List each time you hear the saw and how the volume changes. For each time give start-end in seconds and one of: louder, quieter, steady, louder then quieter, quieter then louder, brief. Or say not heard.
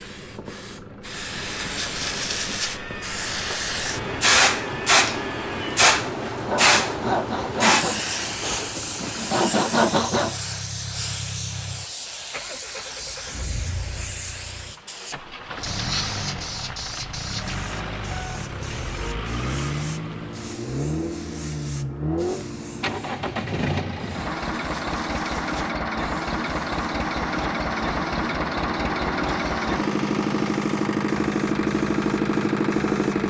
1.2-10.4 louder.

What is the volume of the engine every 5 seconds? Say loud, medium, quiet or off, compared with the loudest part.
quiet, quiet, quiet, medium, medium, loud, loud.